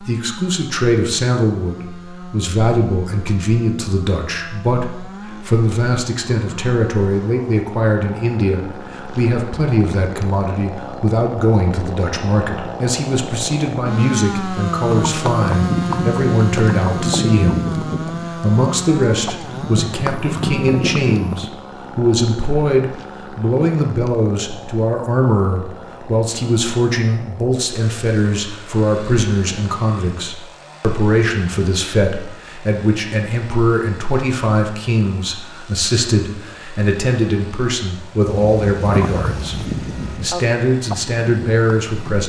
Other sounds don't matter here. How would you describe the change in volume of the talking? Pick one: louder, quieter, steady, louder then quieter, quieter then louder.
steady.